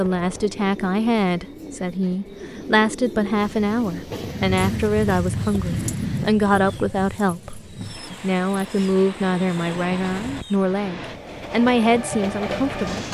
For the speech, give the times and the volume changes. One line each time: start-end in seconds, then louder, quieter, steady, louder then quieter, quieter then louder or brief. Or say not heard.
0.0-13.0 steady.